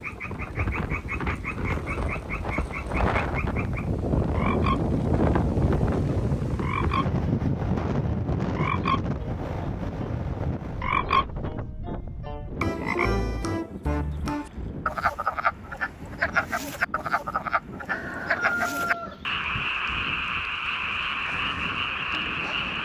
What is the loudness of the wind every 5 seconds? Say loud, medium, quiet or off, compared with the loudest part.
loud, loud, medium, quiet, quiet.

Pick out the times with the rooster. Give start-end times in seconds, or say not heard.
17.9-19.4.